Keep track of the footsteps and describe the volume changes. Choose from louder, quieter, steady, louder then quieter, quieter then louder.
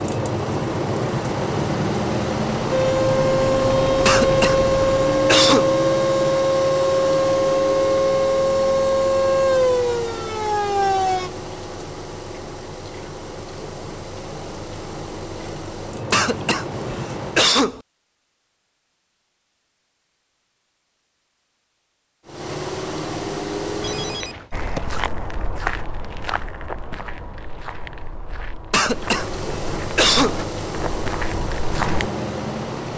quieter then louder.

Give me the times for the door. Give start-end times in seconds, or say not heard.
not heard.